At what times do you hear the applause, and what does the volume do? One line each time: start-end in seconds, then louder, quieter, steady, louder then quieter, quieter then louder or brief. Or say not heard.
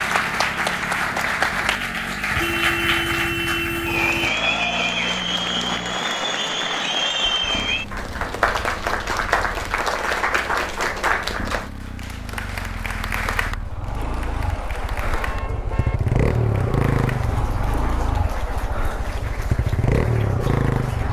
0.0-21.0 quieter.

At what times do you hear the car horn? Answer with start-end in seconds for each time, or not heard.
2.3-4.3, 13.9-16.0.